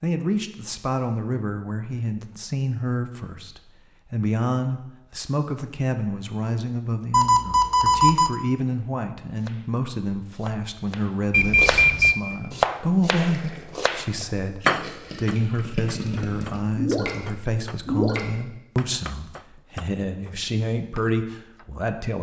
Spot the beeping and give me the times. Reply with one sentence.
The beeping can be heard from 7.1 to 8.3 s and from 11.3 to 12.2 s.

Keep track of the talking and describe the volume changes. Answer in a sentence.
The loudness of the talking stays about the same.